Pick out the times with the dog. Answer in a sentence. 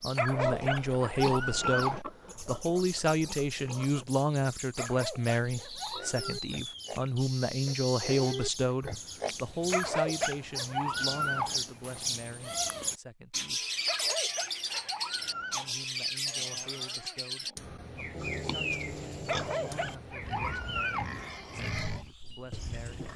You can hear the dog from 0.1 to 2.0 s, from 4.8 to 6.3 s, from 9.7 to 11.6 s, from 13.8 to 15.8 s and from 19.2 to 21.1 s.